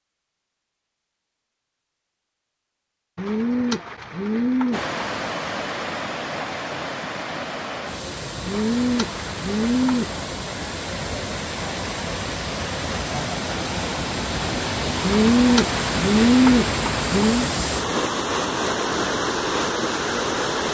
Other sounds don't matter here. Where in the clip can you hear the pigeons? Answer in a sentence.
You can hear the pigeons from 3.1 to 5.0 s, from 8.4 to 10.2 s and from 15.0 to 17.5 s.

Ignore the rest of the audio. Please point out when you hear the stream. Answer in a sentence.
The stream can be heard from 4.7 to 20.7 s.